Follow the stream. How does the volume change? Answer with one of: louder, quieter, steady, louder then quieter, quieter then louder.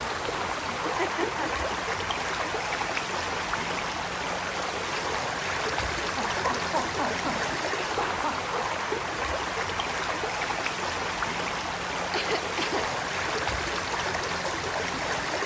steady.